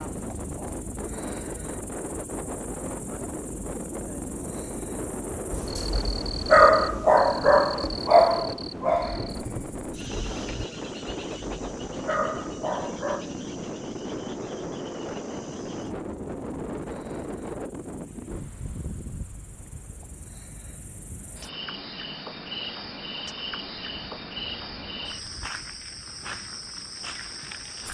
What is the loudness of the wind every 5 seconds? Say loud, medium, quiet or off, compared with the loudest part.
loud, loud, loud, loud, quiet, quiet.